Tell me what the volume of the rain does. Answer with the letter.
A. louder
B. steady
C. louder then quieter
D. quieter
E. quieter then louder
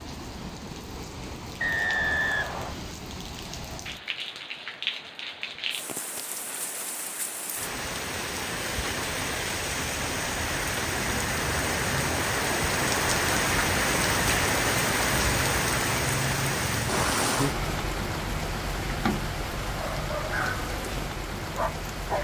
C.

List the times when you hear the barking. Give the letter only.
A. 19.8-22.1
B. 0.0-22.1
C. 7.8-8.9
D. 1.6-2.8
A.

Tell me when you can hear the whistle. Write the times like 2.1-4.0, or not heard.
1.6-2.8.